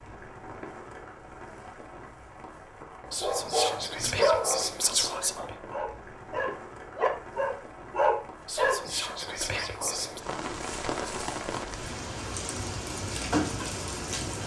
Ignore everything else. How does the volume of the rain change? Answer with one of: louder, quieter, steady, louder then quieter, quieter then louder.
louder.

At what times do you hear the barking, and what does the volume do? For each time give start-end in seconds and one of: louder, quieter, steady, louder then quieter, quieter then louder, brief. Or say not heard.
3.0-8.8 quieter then louder.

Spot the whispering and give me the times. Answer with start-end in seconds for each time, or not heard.
3.1-5.5, 8.4-10.2.